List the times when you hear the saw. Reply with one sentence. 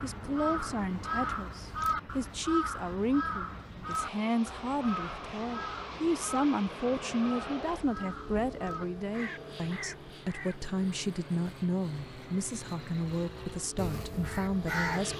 The saw can't be heard in this clip.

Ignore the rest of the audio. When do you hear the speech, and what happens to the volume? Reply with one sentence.
The speech can be heard from 0.0 to 15.1 s, at a steady volume.